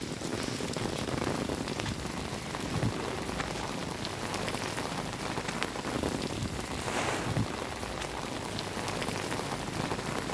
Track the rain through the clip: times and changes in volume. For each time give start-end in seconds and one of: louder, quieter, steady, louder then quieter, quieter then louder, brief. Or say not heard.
0.0-10.3 steady.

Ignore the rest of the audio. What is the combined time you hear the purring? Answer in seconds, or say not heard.
10 s.